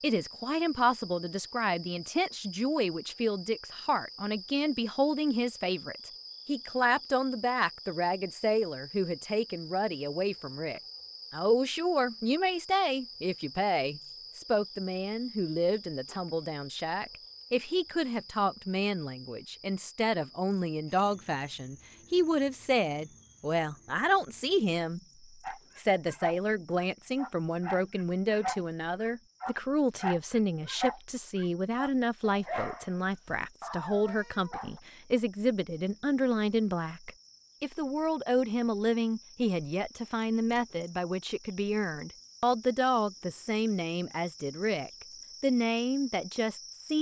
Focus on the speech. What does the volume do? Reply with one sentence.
The volume of the speech stays about the same.